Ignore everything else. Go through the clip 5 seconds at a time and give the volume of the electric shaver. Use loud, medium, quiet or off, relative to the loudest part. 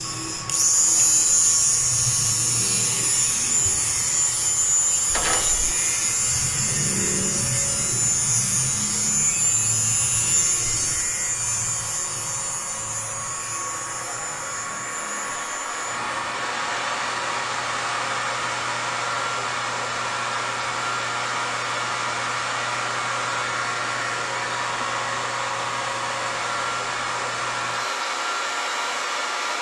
loud, loud, medium, quiet, quiet, quiet.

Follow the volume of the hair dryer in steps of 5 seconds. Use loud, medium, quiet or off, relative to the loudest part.
quiet, quiet, medium, loud, loud, loud.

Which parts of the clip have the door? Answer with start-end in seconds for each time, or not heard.
5.1-5.8.